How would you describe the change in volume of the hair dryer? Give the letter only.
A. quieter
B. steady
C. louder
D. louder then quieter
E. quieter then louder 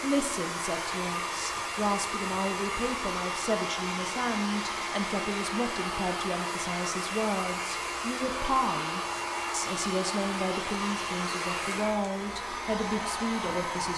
B.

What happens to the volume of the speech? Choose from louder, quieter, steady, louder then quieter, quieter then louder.
steady.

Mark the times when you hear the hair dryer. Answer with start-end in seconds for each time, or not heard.
0.0-13.9.